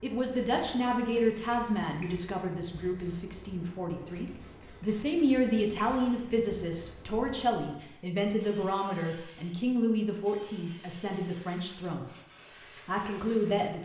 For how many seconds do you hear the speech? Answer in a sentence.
The speech can be heard for 13 seconds in total.